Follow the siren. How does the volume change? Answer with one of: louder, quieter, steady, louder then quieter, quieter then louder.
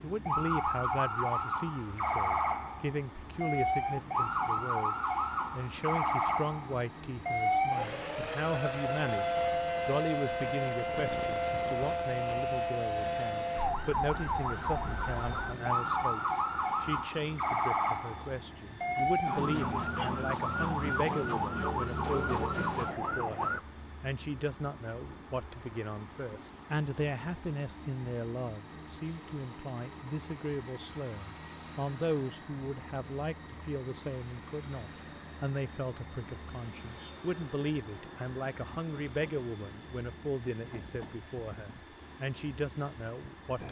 steady.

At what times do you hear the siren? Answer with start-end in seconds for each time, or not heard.
0.0-23.6.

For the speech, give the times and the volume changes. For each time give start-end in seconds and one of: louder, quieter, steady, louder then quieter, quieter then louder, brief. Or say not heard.
0.0-43.6 steady.